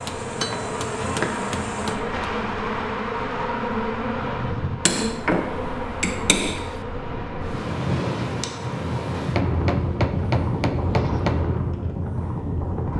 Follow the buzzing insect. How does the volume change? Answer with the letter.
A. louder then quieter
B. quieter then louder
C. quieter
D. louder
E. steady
C.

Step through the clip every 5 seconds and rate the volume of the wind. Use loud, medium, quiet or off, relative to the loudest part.
quiet, loud, loud.